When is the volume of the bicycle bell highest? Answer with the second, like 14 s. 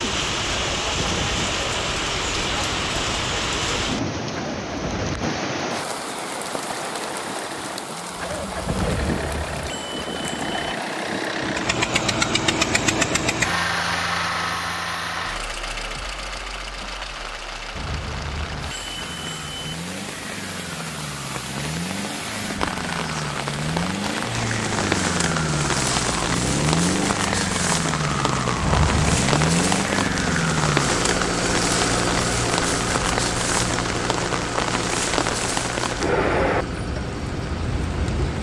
29 s.